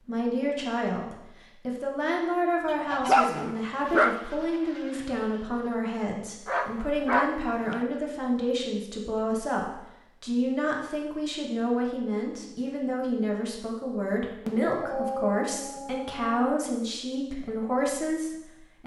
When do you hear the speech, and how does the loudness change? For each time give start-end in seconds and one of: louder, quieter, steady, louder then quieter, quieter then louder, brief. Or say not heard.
0.1-18.8 steady.